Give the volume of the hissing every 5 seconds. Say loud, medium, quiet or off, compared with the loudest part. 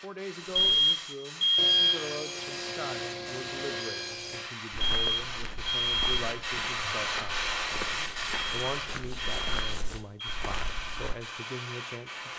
medium, loud, medium.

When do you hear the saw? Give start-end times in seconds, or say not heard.
1.6-4.5, 8.0-10.1.